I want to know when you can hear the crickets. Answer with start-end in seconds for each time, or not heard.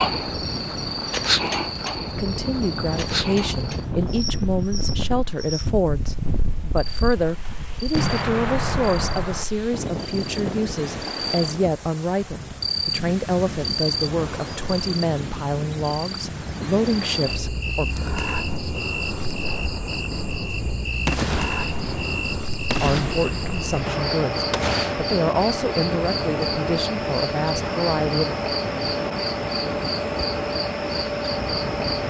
0.0-32.0.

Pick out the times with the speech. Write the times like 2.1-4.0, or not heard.
2.0-17.9, 22.6-28.4.